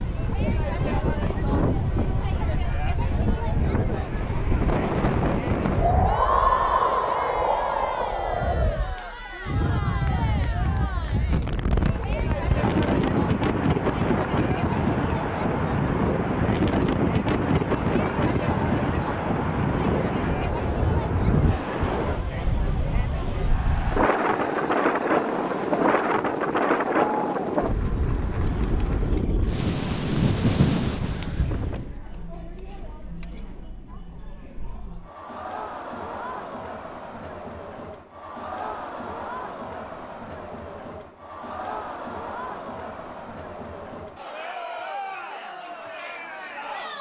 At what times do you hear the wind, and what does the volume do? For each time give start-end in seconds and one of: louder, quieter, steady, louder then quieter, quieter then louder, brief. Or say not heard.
0.0-31.9 steady.